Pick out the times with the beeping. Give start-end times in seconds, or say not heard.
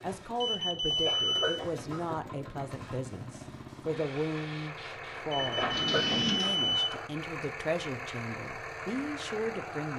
0.4-1.6, 5.3-6.9.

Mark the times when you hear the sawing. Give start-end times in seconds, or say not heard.
not heard.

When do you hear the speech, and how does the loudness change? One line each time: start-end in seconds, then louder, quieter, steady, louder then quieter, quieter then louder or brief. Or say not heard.
0.0-9.9 steady.